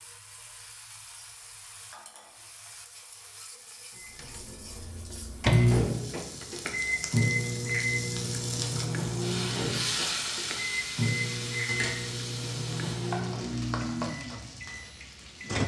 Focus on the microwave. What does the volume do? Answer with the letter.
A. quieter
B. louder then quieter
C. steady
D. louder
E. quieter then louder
A.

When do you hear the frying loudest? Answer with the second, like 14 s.
10 s.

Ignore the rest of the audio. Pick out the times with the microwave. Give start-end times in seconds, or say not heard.
4.0-15.6.